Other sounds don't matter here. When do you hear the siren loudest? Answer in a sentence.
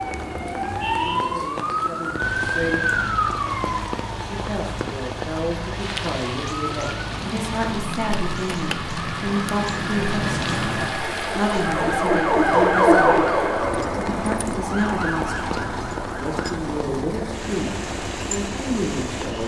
The loudest moment of the siren is at 13 seconds.